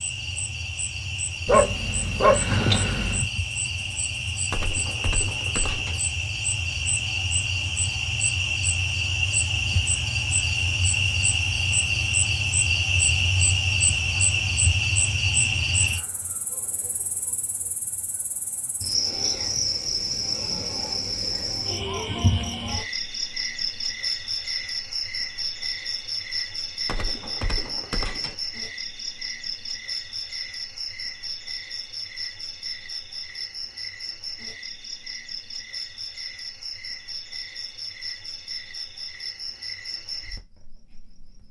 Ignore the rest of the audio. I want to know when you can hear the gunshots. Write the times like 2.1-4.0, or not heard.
4.5-6.0, 26.9-28.4.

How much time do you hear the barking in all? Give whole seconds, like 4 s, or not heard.
2 s.